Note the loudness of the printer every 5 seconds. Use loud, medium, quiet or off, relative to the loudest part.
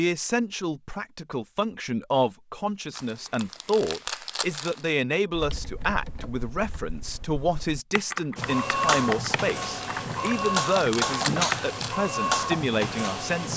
off, loud, loud.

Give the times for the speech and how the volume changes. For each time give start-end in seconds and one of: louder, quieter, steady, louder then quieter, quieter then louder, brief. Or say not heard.
0.0-13.5 steady.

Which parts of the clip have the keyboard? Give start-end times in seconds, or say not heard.
5.3-11.6.